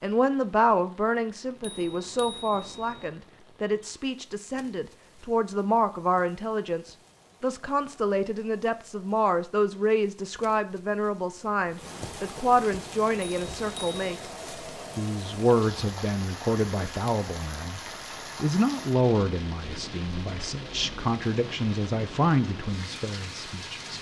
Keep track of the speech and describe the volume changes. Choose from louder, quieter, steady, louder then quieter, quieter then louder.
steady.